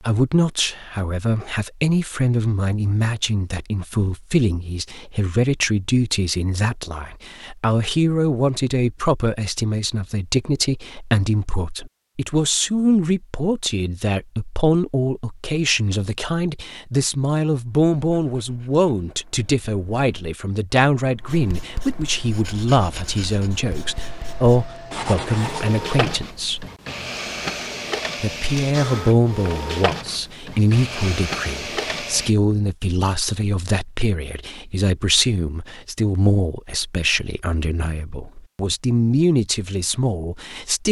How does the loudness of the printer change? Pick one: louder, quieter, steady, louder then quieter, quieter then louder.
louder.